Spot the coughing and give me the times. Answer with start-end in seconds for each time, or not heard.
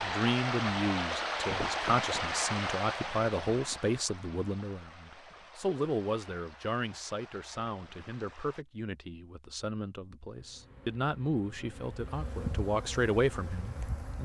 not heard.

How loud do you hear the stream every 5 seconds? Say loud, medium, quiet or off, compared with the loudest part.
loud, quiet, off.